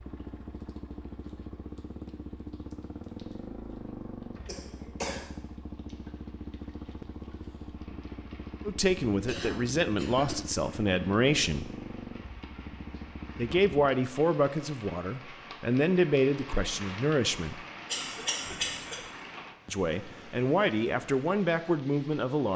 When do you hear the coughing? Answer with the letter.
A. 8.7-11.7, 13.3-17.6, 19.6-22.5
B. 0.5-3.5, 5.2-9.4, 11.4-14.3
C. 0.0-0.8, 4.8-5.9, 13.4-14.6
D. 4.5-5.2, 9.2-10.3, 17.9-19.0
D.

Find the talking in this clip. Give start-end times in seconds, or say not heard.
8.7-11.7, 13.3-17.6, 19.6-22.5.